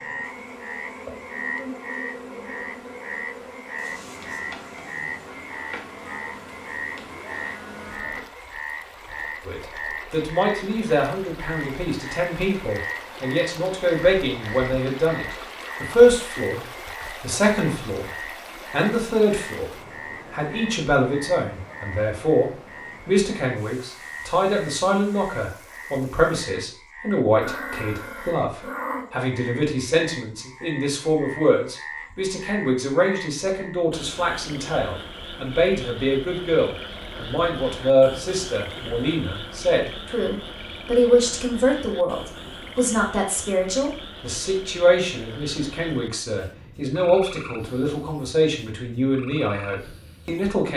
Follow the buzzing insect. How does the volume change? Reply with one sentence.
The volume of the buzzing insect stays about the same.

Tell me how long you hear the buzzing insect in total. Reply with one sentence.
You can hear the buzzing insect for 8 seconds altogether.